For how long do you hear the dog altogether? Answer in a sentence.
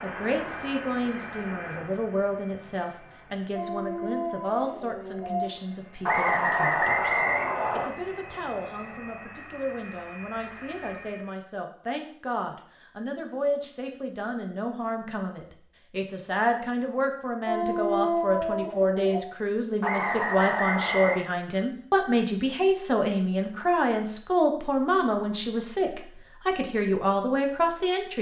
The dog can be heard for 4 seconds in total.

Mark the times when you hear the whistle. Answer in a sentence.
You can hear the whistle from 6.0 to 7.9 s and from 19.8 to 21.2 s.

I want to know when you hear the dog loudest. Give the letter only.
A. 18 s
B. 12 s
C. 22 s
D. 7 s
A.